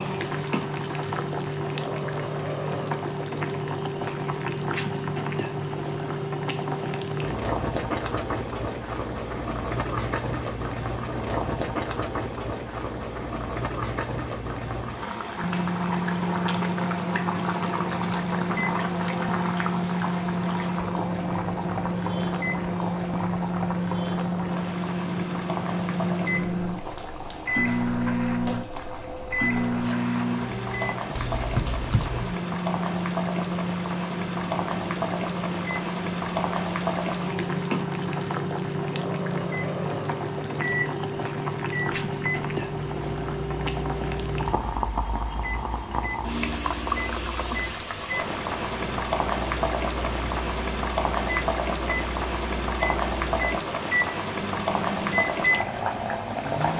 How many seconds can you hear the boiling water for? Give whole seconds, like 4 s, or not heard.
57 s.